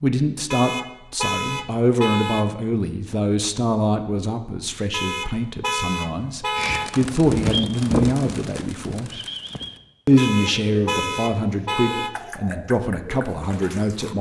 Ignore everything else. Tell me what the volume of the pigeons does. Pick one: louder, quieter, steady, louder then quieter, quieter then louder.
quieter.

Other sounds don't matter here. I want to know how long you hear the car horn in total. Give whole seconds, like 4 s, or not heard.
6 s.